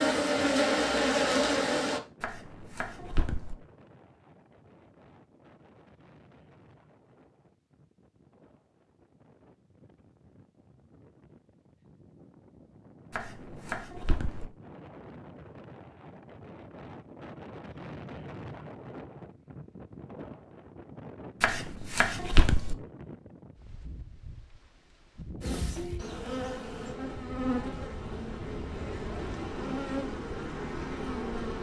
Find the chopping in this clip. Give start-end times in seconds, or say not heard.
2.2-3.5, 13.1-14.4, 21.4-22.8.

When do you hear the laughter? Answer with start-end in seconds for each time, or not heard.
not heard.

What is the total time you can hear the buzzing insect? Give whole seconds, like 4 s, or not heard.
8 s.